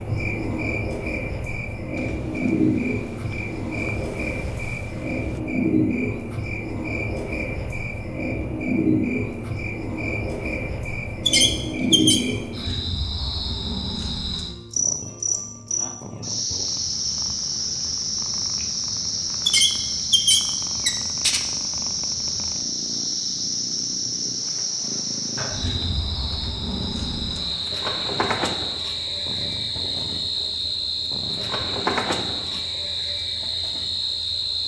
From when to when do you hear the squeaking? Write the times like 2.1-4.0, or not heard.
11.2-12.2, 19.4-21.4.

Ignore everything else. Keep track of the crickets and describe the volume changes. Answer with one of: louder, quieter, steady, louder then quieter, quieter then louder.
steady.